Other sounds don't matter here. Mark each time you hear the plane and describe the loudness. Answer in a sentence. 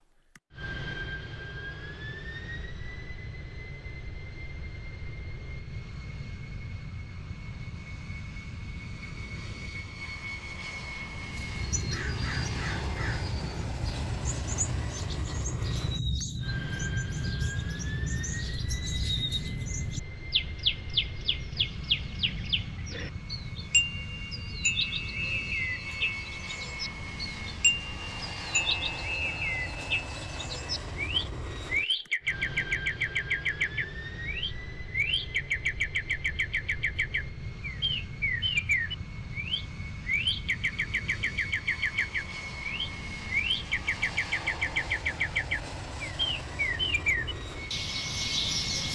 You can hear the plane from 0.0 to 48.8 s, at a steady volume.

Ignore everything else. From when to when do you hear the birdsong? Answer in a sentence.
The birdsong can be heard from 11.2 to 48.8 s.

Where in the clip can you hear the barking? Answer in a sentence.
You can't hear the barking here.